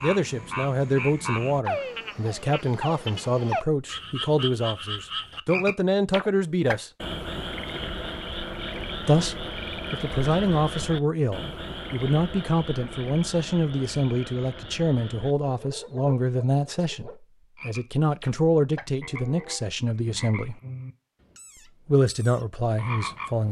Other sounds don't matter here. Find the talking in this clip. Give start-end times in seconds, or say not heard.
0.0-6.9, 9.0-20.6, 21.9-23.4.